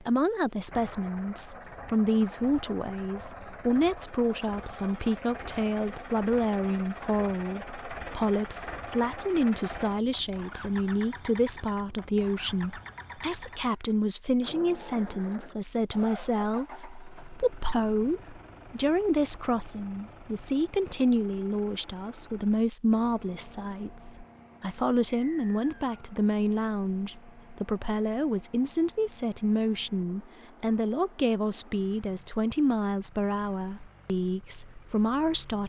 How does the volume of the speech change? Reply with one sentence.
The volume of the speech stays about the same.